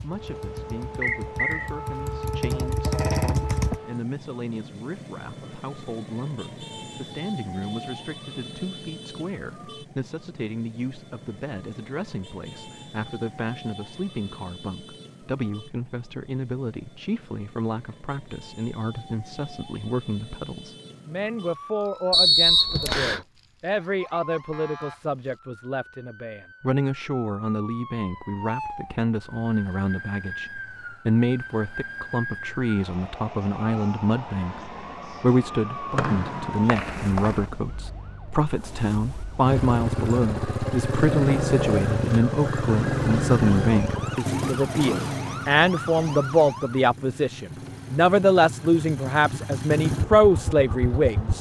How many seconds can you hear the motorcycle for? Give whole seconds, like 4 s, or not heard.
16 s.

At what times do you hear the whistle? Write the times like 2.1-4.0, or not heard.
1.0-1.7, 22.1-23.2, 36.0-37.4.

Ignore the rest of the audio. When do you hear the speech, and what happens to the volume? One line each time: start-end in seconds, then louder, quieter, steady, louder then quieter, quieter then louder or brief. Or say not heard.
0.0-51.3 louder.